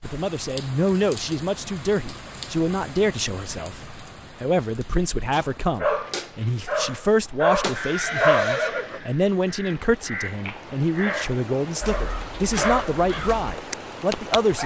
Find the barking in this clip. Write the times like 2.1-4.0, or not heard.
5.3-8.4, 11.0-14.6.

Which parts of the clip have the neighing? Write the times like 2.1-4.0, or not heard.
7.9-9.0.